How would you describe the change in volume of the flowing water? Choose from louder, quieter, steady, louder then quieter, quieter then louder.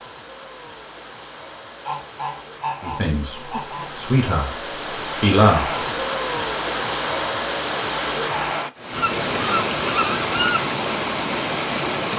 louder.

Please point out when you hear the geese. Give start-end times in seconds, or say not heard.
1.9-4.0, 8.9-10.7.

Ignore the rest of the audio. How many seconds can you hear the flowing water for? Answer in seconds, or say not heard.
12 s.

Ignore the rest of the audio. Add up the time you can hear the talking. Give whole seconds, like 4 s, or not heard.
3 s.